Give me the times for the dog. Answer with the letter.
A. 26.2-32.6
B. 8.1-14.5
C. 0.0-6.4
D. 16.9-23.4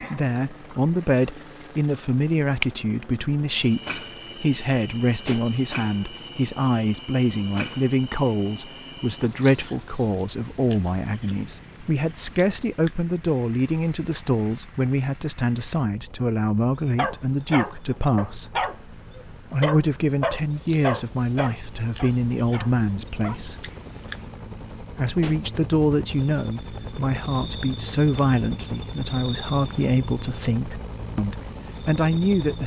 D.